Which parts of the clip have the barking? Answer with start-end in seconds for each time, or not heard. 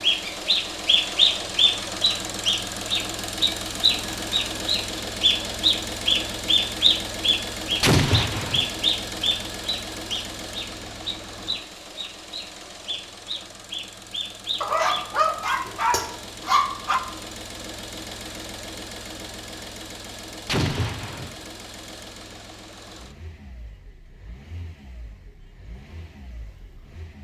14.6-17.0.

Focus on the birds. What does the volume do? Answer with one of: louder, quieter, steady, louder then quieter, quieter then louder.
quieter.